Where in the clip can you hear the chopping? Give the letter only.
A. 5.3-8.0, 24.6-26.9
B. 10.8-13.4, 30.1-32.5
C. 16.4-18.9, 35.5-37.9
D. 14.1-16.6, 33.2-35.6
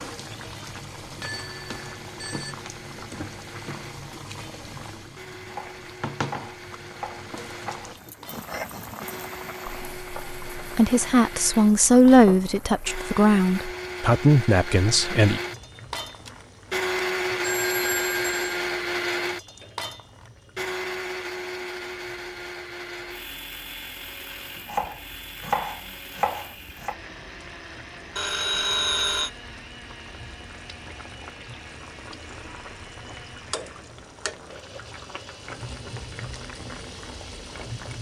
A.